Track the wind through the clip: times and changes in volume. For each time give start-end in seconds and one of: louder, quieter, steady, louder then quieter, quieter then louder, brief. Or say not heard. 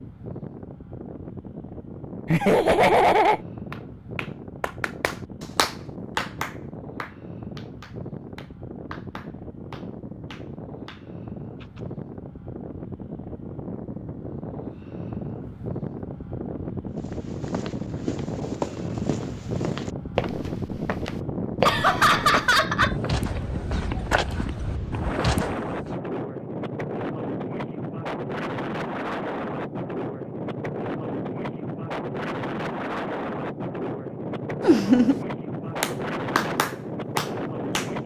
0.0-38.0 louder.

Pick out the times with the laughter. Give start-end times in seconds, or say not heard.
2.2-3.4, 21.6-23.4, 34.6-35.2.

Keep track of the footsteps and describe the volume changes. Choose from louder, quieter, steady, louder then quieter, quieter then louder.
louder.